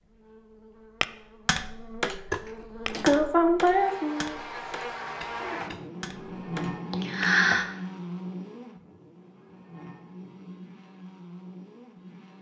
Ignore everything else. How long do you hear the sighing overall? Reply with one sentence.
You can hear the sighing for 2 seconds altogether.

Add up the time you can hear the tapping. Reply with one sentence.
You can hear the tapping for 7 seconds altogether.